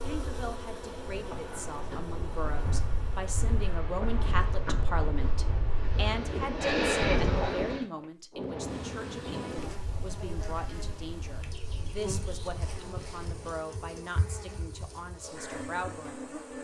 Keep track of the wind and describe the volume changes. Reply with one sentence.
The volume of the wind goes up, then down.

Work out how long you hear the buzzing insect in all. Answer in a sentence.
The buzzing insect can be heard for 12 seconds in total.